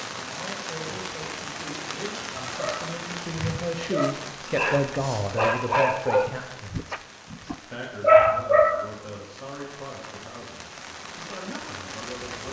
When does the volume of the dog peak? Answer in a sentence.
The volume of the dog peaks at 8 seconds.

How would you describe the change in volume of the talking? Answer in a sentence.
The loudness of the talking goes up, then down.